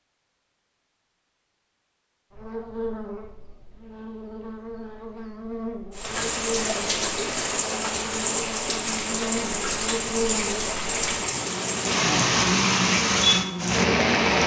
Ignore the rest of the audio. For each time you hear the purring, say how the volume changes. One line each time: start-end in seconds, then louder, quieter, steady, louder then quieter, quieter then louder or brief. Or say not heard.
not heard.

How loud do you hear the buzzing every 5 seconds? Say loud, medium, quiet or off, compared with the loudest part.
medium, medium, loud.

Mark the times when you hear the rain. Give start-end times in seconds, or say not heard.
6.0-14.4.